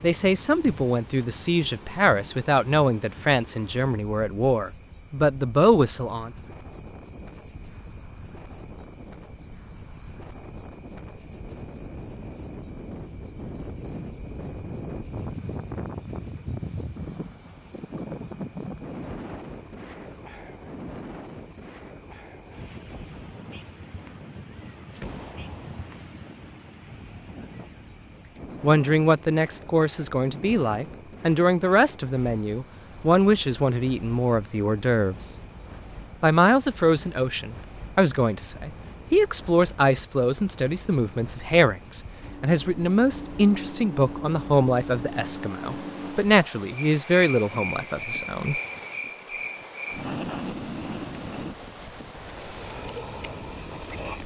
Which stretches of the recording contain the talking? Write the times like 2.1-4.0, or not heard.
0.0-6.3, 28.6-35.3, 36.2-48.6.